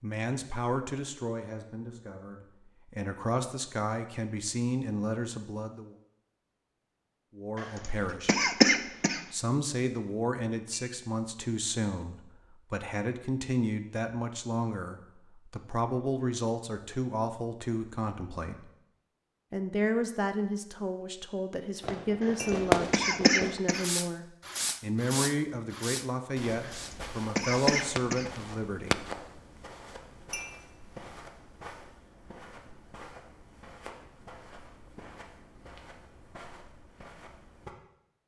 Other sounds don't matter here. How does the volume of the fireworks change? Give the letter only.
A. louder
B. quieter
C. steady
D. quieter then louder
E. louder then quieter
B.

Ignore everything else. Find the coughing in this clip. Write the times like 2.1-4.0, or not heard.
7.5-9.2, 22.2-23.9, 26.6-28.3.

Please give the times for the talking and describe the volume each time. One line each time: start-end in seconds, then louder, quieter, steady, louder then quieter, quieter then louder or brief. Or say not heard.
0.0-5.9 quieter then louder
7.3-8.4 brief
9.3-18.7 steady
19.5-29.1 steady.